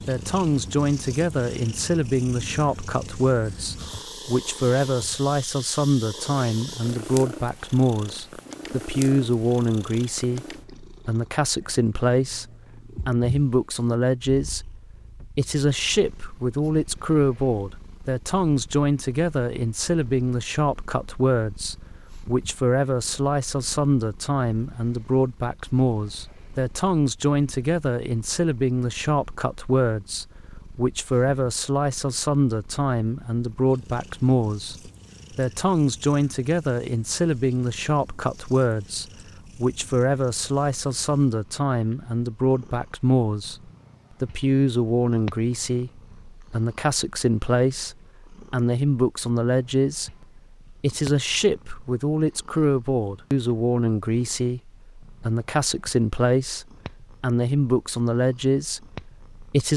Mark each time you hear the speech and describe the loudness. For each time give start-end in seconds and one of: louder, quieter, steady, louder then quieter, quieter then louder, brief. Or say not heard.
0.0-59.7 steady.